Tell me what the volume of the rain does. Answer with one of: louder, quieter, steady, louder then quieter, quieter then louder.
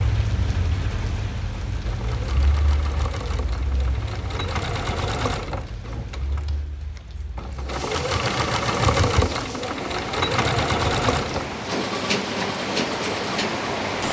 quieter then louder.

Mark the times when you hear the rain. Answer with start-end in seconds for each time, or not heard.
0.0-14.0.